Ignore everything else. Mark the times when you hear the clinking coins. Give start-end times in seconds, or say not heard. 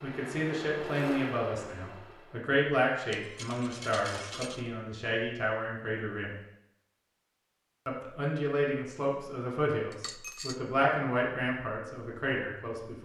3.1-4.7, 9.9-10.6.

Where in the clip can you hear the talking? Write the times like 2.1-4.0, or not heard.
0.0-6.3, 7.8-13.0.